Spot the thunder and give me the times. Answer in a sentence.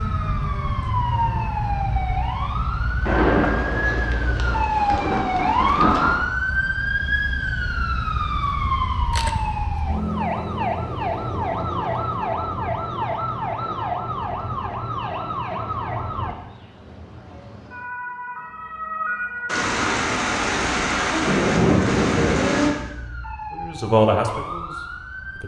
You can hear the thunder from 3.0 to 6.2 s and from 19.4 to 22.8 s.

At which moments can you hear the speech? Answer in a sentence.
You can hear the speech from 23.5 to 25.4 s.